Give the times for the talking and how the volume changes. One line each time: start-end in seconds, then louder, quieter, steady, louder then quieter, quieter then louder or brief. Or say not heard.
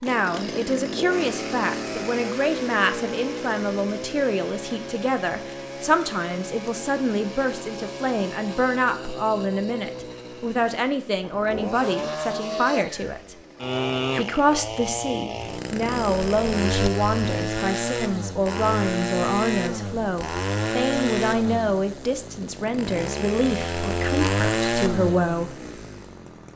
0.0-13.3 steady
14.2-25.6 steady.